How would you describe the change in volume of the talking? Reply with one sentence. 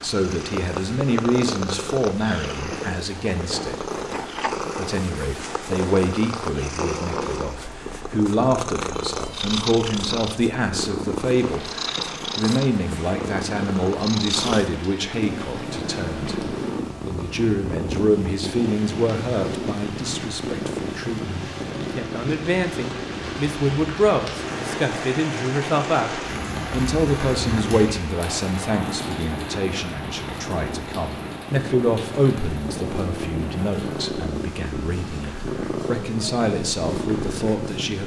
The volume of the talking stays about the same.